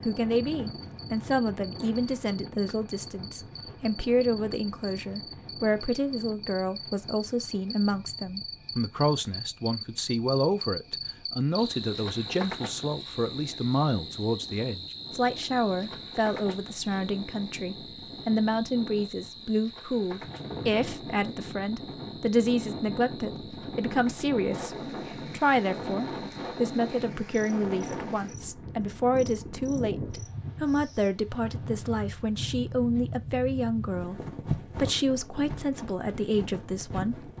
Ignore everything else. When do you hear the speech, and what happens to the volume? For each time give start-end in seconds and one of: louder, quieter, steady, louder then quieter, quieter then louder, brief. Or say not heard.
0.1-37.3 steady.